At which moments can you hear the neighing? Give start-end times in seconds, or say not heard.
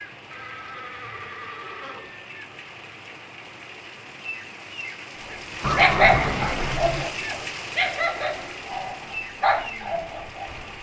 0.3-2.3, 5.6-7.1.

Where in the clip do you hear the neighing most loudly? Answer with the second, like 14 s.
6 s.